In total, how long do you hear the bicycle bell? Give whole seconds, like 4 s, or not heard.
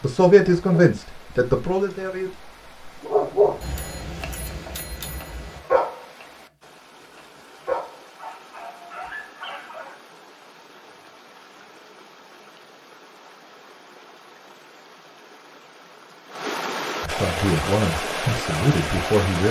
2 s.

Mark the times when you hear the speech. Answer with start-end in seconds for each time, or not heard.
0.0-2.3, 17.0-19.4.